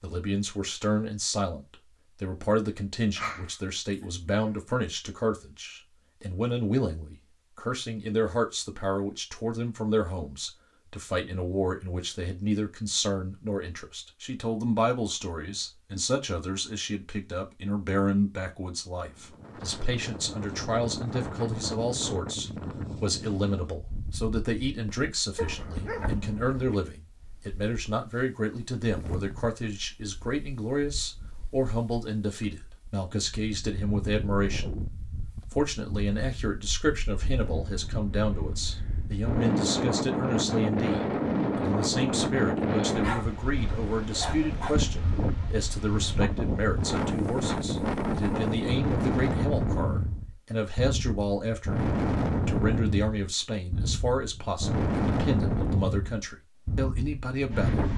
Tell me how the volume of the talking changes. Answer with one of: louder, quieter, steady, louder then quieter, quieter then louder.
steady.